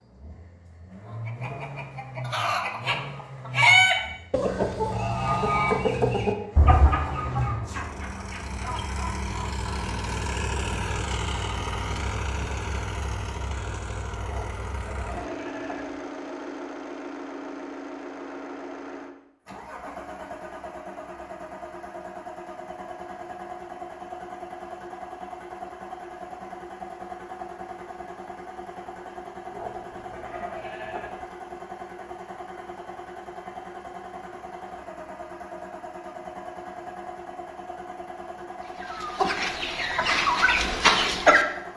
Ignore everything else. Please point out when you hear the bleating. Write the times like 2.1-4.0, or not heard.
14.2-16.0, 29.5-31.2.